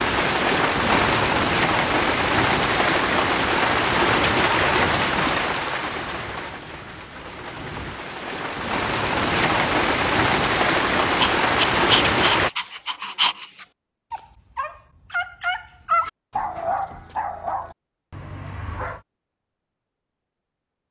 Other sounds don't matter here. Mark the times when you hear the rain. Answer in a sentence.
The rain can be heard from 0.0 to 12.5 s.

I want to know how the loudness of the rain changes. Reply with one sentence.
The volume of the rain goes down, then up.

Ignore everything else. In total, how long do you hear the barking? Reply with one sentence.
You can hear the barking for 8 seconds altogether.